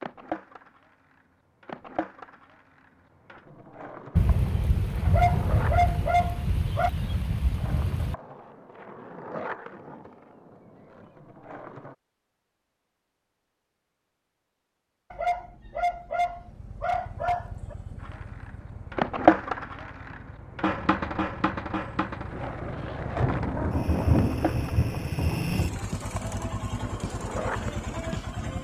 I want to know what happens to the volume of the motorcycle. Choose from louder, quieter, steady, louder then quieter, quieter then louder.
louder.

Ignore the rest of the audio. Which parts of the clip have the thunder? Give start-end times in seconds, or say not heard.
4.2-8.2, 23.1-25.9.